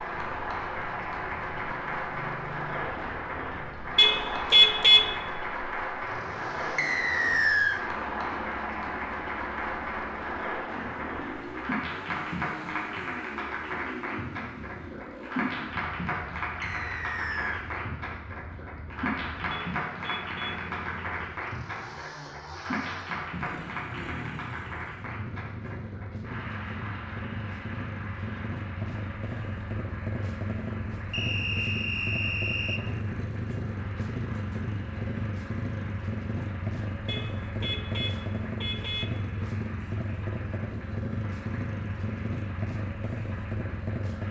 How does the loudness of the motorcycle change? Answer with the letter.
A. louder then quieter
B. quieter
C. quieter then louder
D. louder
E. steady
D.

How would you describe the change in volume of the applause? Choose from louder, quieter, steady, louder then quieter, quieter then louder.
quieter.